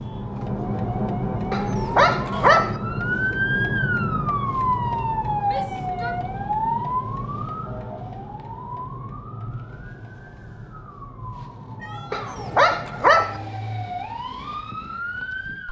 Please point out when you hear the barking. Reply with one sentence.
The barking can be heard from 1.5 to 2.8 s and from 12.1 to 13.4 s.